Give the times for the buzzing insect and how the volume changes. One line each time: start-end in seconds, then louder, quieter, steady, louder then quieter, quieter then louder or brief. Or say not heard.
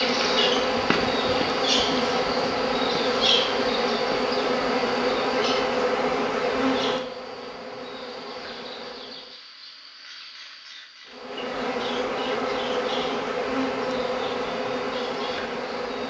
0.0-9.4 quieter
11.1-16.0 steady.